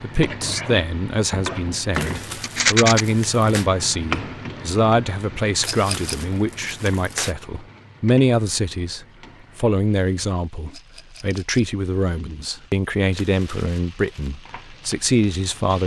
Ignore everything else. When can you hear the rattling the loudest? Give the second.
3 s.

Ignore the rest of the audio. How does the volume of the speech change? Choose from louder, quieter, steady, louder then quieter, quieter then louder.
steady.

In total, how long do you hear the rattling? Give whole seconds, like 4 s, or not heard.
2 s.